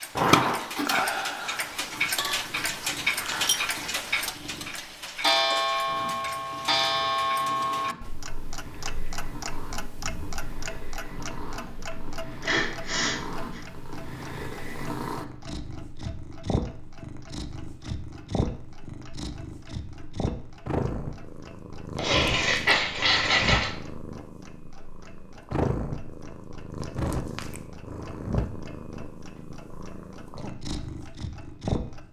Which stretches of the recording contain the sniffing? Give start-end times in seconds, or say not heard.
0.1-0.8, 11.7-13.6, 21.9-23.7.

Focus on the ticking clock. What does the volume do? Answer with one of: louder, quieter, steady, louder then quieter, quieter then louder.
quieter.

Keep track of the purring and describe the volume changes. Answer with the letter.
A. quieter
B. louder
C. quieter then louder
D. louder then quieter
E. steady
B.